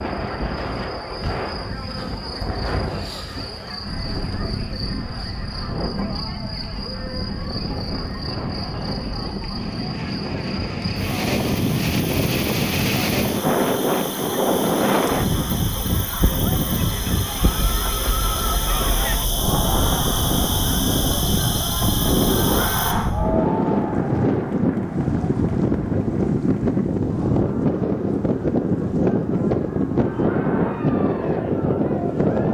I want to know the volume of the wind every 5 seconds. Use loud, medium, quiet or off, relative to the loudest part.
medium, medium, loud, medium, loud, loud, loud.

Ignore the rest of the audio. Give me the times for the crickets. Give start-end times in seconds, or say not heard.
0.0-22.9.